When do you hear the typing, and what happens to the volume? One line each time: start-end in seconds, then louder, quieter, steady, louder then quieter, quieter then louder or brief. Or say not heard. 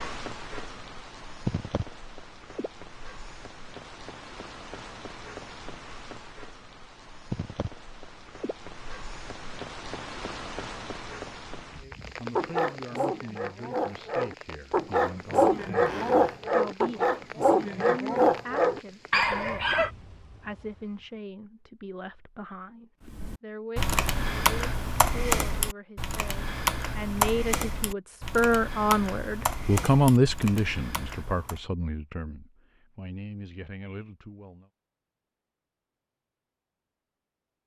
23.1-31.6 quieter.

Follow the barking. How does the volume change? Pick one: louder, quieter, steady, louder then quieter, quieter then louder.
louder.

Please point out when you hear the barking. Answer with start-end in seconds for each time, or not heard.
12.3-19.9.